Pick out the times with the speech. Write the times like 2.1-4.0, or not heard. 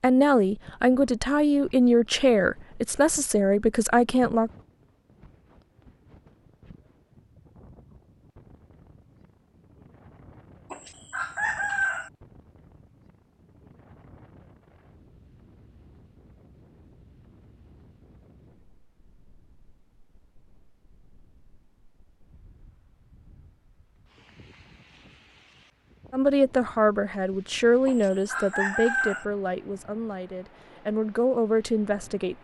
0.0-4.5, 26.1-32.3.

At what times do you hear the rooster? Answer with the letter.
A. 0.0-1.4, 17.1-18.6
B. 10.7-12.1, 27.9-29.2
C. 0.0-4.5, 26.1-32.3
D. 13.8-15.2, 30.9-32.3
B.